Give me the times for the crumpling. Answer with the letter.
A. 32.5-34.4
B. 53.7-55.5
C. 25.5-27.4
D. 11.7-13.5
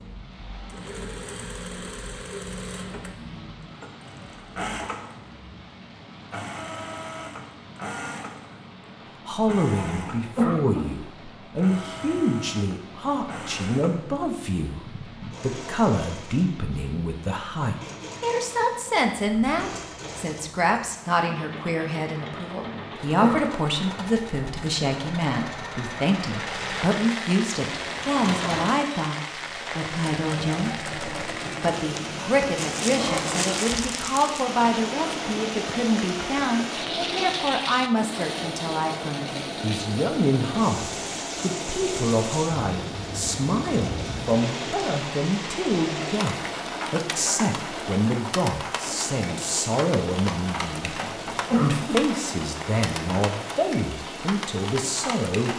A.